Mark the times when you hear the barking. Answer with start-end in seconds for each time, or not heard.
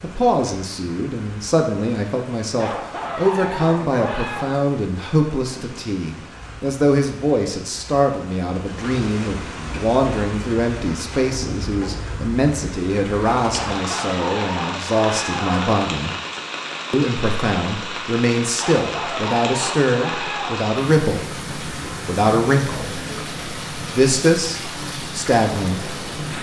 2.5-4.5, 13.6-15.8, 18.6-20.6.